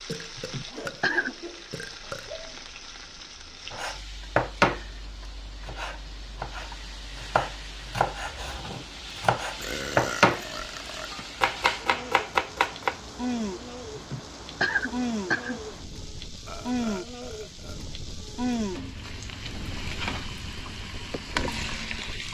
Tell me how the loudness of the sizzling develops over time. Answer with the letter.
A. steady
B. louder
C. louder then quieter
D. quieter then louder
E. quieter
B.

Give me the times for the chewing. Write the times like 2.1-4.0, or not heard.
not heard.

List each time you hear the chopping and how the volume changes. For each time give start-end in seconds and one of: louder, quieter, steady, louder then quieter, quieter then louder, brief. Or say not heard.
3.7-4.9 brief
5.6-10.5 louder
11.4-13.0 brief.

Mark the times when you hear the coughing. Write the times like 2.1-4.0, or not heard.
0.3-1.4, 13.9-15.6.